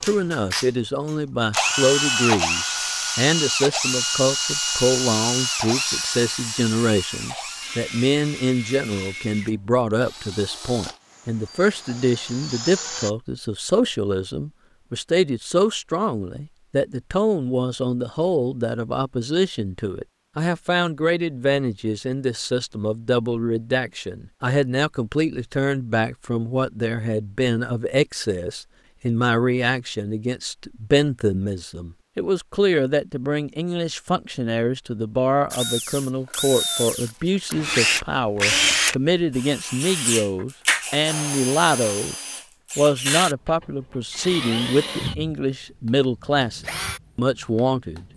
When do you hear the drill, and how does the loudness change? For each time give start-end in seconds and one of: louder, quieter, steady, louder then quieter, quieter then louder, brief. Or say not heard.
0.0-13.1 quieter
35.5-48.1 quieter.